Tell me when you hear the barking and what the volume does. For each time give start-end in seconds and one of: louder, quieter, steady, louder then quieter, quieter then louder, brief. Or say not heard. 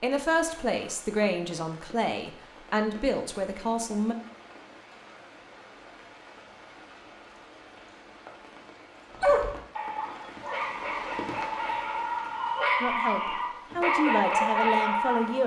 9.2-15.4 louder.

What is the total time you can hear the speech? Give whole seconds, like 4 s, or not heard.
7 s.